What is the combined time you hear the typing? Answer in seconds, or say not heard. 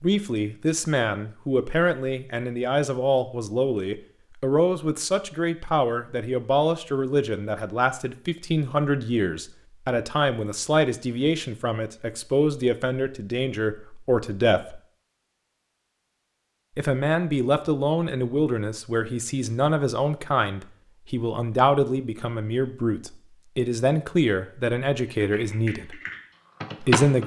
2 s.